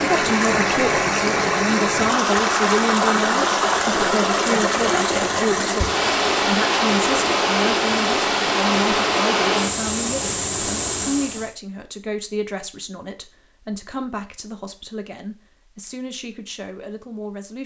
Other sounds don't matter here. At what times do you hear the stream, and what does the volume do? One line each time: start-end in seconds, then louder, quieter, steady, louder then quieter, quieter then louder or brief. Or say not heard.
0.0-11.6 steady.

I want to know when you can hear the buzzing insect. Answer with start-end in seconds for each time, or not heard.
not heard.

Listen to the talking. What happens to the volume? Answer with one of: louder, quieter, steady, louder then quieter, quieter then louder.
quieter.